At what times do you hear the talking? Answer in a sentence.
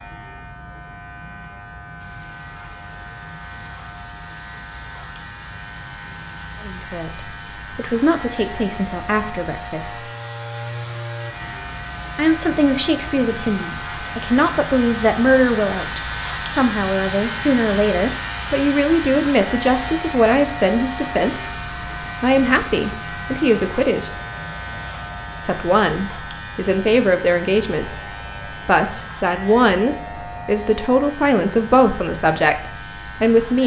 You can hear the talking from 6.6 to 10.1 s, from 12.2 to 24.1 s and from 25.4 to 33.6 s.